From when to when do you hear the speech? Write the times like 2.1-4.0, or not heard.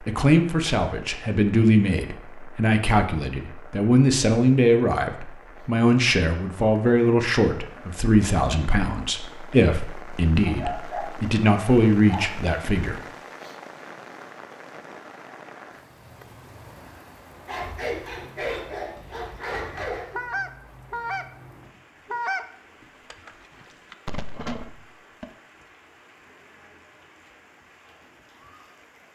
0.0-13.0.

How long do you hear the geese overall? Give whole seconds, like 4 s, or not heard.
6 s.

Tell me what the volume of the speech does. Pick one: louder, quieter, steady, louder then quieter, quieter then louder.
steady.